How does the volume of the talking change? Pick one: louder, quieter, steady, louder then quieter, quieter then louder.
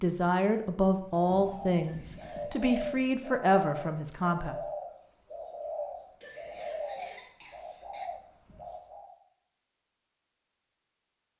quieter then louder.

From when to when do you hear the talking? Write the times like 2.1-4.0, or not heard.
0.0-4.5.